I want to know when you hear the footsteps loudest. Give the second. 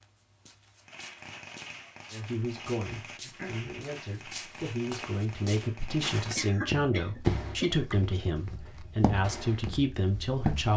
7 s.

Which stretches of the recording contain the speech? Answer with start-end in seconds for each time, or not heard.
2.1-10.7.